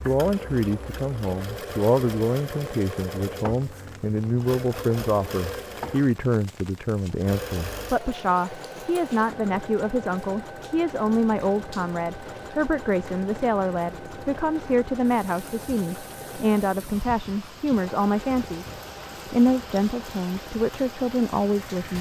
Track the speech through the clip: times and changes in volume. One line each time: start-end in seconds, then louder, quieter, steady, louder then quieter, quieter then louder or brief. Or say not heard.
0.1-21.9 steady.